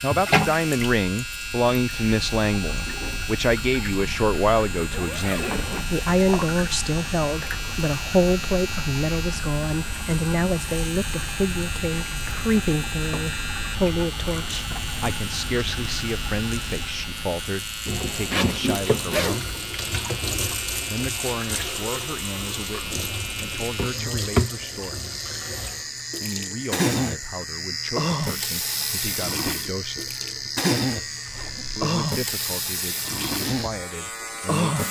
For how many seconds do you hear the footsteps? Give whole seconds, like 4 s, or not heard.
not heard.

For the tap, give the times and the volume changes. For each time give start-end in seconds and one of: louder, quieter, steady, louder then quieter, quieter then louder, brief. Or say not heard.
0.1-34.8 louder.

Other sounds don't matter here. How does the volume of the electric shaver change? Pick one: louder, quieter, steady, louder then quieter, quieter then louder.
steady.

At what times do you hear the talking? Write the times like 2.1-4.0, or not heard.
0.0-19.5, 20.9-25.1, 26.2-30.1, 31.8-34.8.